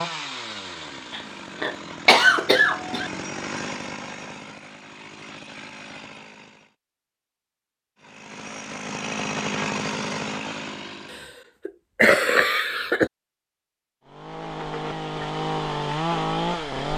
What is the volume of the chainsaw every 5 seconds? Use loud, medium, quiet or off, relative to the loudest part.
medium, medium, medium, loud.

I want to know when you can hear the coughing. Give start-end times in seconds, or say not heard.
1.1-3.1, 11.7-13.1.